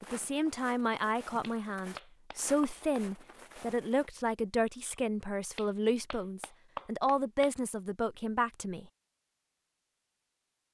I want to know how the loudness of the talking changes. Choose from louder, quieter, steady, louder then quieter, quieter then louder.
steady.